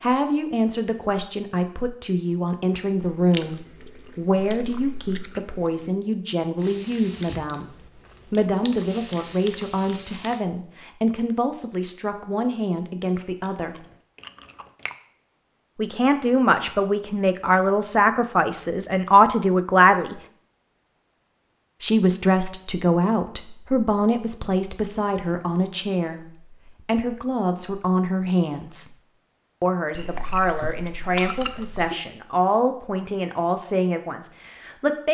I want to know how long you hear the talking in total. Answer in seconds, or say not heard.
31 s.